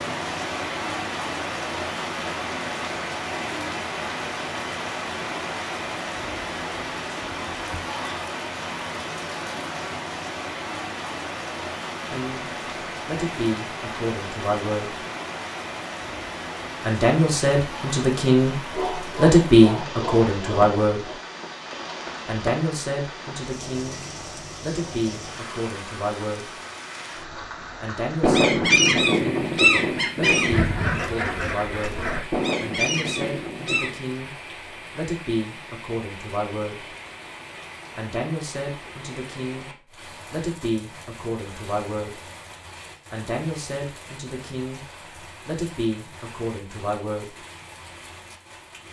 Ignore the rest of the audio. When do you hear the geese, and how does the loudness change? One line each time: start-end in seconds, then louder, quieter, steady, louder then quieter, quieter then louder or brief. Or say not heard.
28.2-34.0 quieter.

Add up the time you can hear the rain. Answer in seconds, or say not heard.
49 s.